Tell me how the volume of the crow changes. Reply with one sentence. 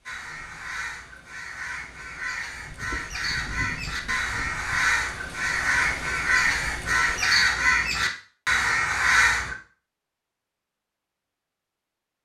The loudness of the crow goes up.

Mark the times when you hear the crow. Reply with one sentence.
You can hear the crow from 0.1 to 9.6 s.